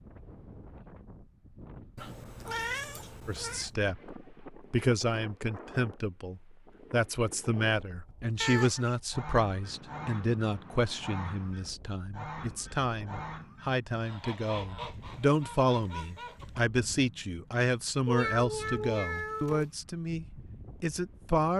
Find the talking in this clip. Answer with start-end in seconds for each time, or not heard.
3.2-21.5.